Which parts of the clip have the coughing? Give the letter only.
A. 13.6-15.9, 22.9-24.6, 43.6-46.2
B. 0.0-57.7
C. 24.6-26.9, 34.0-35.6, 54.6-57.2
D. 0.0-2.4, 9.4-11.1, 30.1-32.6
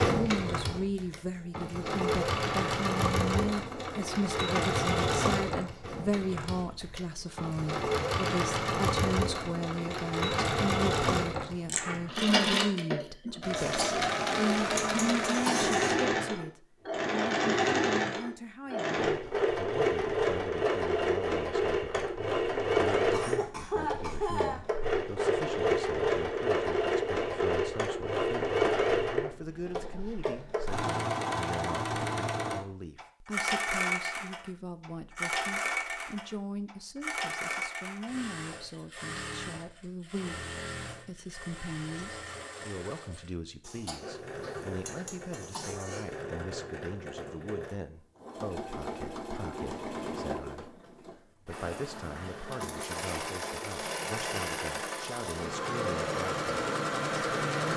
A.